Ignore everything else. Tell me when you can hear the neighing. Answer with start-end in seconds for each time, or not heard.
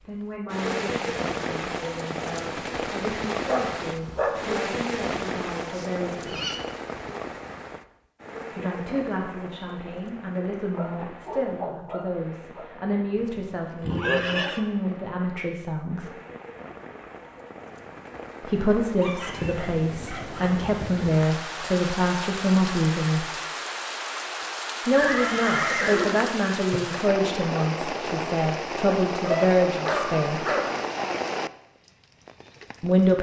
5.7-6.6, 13.2-14.7, 24.9-26.8.